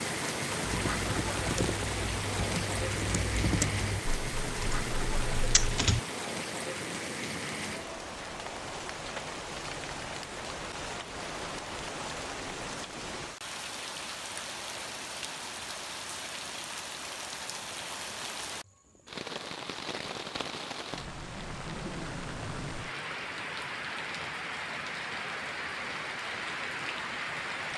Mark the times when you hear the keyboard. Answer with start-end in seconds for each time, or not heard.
0.6-6.0.